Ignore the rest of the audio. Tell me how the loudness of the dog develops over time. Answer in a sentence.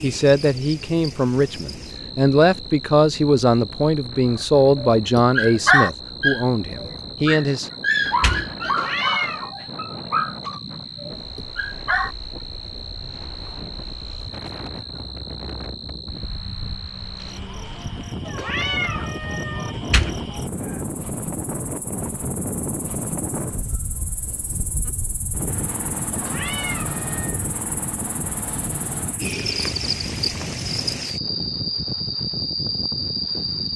The volume of the dog goes down.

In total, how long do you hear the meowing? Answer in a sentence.
You can hear the meowing for 4 seconds altogether.